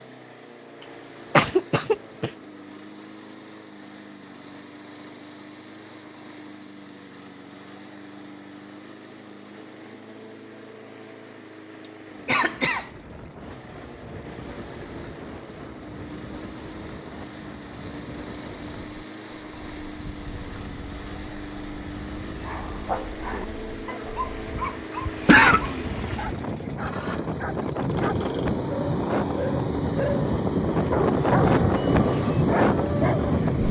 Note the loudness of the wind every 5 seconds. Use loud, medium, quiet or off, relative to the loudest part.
off, off, quiet, quiet, quiet, medium, loud.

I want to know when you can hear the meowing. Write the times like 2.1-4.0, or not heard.
not heard.